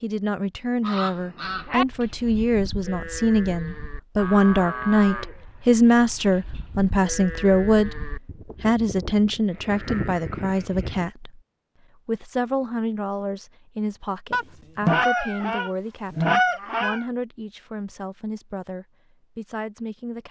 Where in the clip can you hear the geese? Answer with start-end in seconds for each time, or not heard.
0.8-1.9, 14.3-17.1.